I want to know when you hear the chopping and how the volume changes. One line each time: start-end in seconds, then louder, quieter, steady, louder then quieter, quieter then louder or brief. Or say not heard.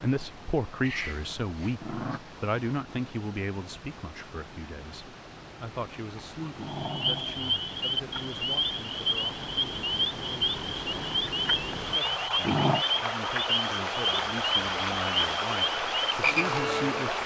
not heard.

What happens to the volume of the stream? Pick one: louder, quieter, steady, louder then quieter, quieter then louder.
louder.